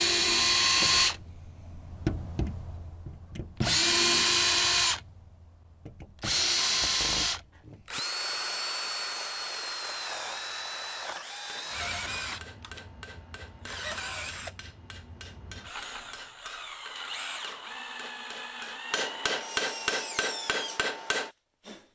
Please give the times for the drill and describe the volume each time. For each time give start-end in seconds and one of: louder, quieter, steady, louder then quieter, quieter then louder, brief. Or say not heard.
0.0-21.9 quieter.